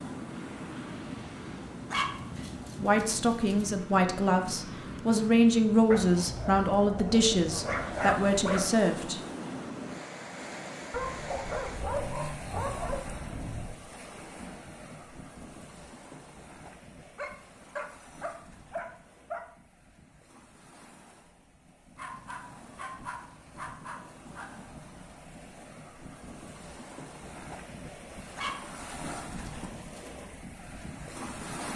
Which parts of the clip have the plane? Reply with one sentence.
The plane can't be heard in this clip.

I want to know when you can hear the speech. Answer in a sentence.
You can hear the speech from 2.8 to 9.2 s.